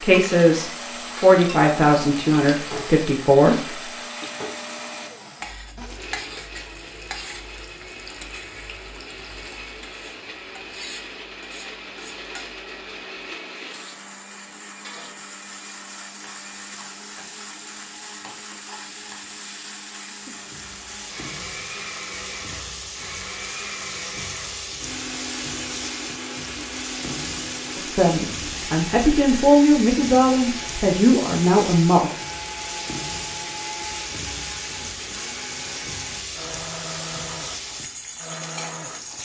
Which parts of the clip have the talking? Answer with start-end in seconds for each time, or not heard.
0.0-3.8, 27.8-32.1.